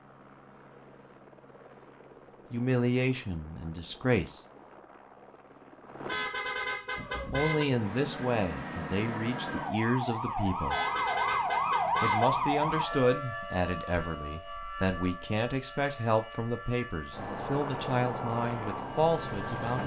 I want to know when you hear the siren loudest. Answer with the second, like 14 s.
12 s.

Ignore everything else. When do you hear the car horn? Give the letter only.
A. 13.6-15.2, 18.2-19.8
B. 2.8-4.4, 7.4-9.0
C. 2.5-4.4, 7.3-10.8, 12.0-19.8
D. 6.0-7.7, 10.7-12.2
D.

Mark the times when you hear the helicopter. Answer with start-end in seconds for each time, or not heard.
0.0-6.2, 17.1-19.8.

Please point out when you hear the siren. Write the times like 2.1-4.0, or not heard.
7.0-19.6.